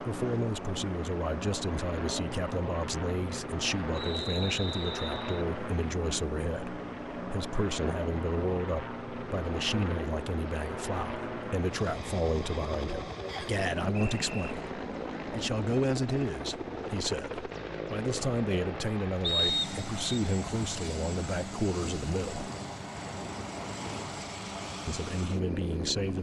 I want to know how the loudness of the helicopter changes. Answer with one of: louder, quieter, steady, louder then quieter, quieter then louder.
steady.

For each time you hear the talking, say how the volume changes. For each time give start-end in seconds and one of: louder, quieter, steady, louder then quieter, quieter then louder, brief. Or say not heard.
0.0-22.5 steady
24.9-26.1 brief.